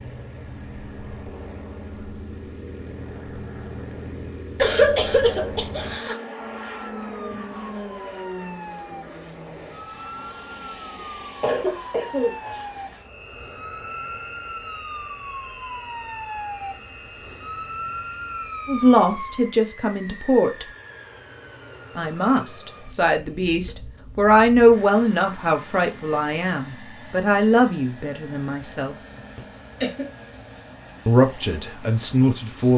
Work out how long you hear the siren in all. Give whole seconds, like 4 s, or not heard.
13 s.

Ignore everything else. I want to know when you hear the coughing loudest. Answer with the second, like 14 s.
5 s.